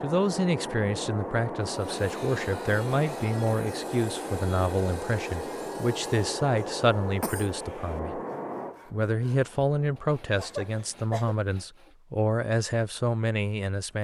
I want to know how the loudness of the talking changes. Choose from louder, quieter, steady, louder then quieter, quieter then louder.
steady.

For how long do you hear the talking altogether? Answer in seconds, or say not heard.
13 s.